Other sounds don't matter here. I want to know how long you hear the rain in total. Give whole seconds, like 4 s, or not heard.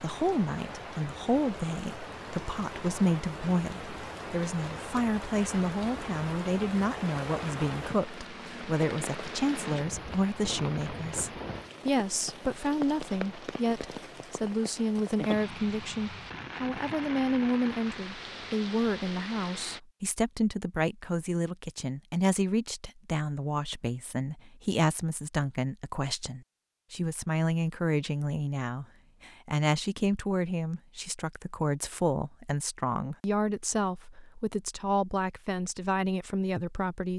20 s.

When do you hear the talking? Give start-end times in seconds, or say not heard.
0.0-37.1.